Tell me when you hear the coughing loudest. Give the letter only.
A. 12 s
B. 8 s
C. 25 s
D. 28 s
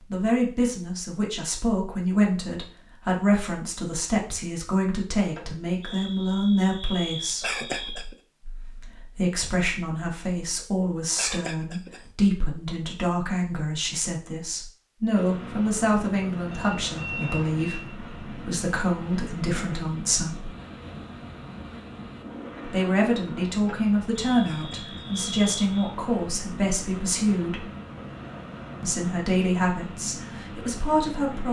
B.